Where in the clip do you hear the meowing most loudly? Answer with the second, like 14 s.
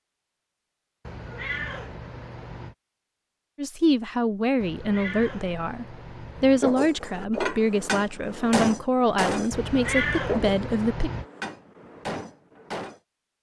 10 s.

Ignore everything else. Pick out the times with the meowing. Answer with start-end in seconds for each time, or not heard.
1.1-2.8, 4.6-6.6, 9.5-11.2.